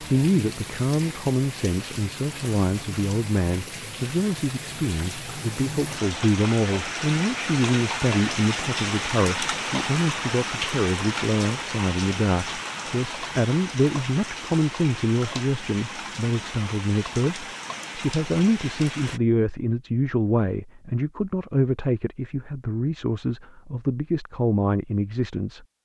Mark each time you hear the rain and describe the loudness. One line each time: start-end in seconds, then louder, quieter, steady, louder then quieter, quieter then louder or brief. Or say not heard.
0.0-19.2 louder then quieter.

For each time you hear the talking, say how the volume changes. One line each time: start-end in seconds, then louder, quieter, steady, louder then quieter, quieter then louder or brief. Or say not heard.
0.0-25.8 steady.